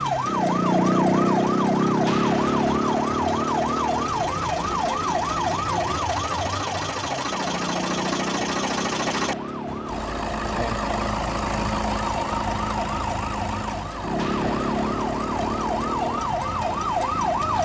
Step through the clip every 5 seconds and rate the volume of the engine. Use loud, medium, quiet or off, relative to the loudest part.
medium, loud, loud, medium.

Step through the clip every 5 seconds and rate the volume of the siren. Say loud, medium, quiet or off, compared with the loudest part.
loud, medium, medium, loud.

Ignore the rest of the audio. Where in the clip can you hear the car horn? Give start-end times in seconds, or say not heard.
not heard.